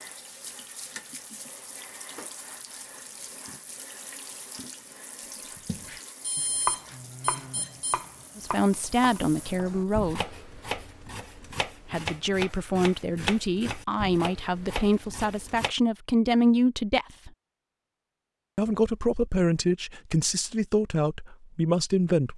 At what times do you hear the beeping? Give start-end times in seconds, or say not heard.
6.2-8.1.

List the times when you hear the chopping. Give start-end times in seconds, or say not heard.
5.5-15.8.